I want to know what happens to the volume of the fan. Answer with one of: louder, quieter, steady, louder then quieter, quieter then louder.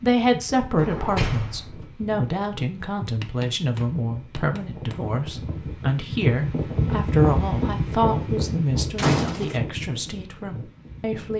louder then quieter.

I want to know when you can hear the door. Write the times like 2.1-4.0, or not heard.
0.8-1.8, 8.9-9.6.